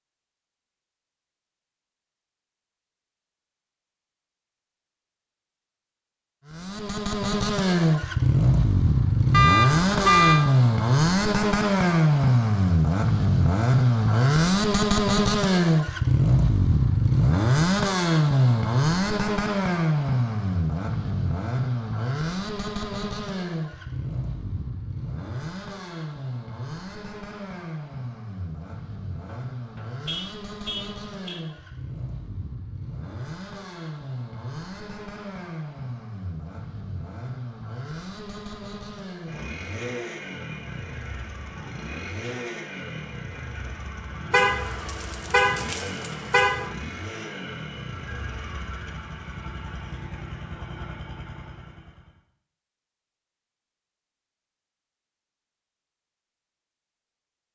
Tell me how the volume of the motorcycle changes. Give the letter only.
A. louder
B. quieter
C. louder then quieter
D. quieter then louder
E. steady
B.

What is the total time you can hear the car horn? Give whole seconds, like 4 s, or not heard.
6 s.